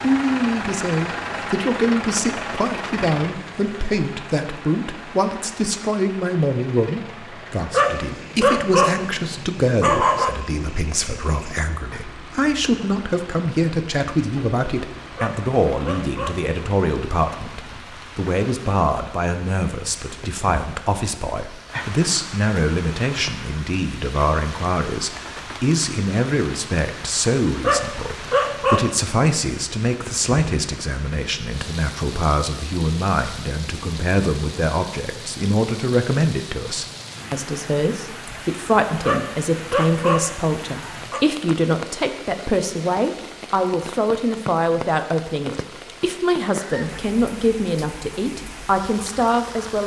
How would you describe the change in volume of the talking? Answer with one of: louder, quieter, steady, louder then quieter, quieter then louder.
steady.